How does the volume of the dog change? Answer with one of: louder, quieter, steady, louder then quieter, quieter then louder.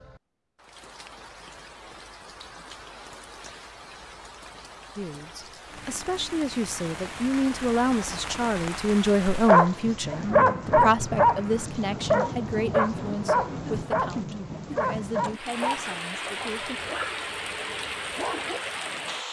quieter.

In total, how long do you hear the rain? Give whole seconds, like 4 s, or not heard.
19 s.